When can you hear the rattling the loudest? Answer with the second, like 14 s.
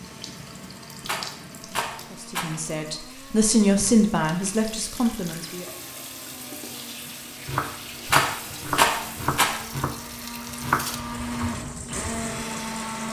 9 s.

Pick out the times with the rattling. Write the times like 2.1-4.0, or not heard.
1.1-2.5, 8.1-9.5.